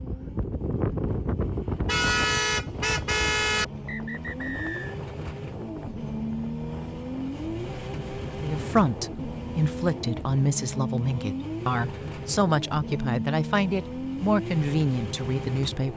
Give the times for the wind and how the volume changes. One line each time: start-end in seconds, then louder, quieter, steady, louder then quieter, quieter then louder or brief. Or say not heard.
0.0-9.6 quieter.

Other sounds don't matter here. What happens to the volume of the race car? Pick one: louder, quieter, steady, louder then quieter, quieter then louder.
louder.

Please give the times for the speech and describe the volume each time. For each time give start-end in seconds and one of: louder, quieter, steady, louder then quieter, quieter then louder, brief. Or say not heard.
8.4-15.9 steady.